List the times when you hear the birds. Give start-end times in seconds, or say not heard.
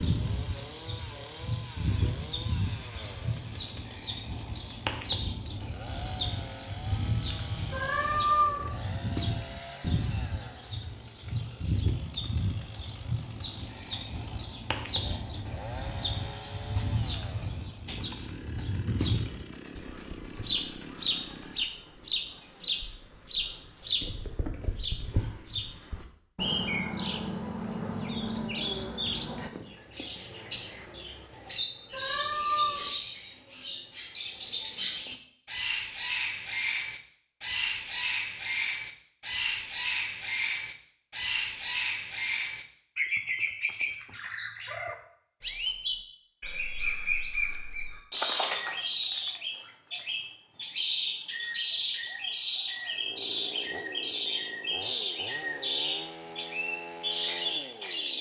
0.0-58.1.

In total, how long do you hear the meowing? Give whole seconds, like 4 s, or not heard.
2 s.